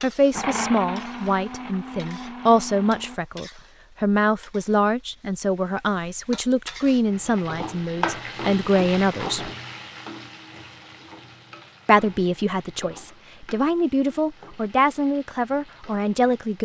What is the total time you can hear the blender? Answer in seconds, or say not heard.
3 s.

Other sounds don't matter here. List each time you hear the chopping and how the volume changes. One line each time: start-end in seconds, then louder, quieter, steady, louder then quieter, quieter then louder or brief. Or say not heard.
not heard.